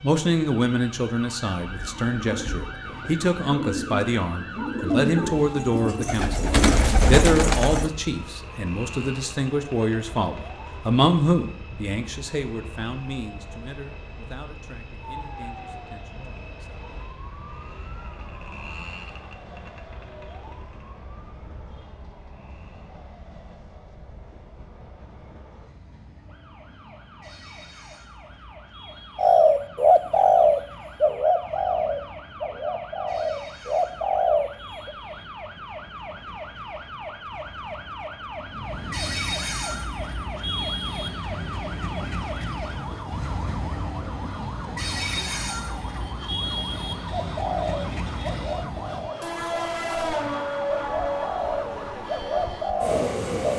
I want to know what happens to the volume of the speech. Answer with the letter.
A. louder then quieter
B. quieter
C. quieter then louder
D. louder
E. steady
B.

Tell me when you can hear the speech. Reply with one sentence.
You can hear the speech from 0.0 to 16.8 s.